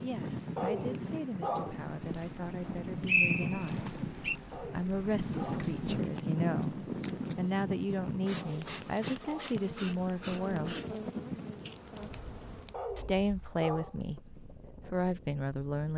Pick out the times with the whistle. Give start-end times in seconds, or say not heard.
2.6-4.3.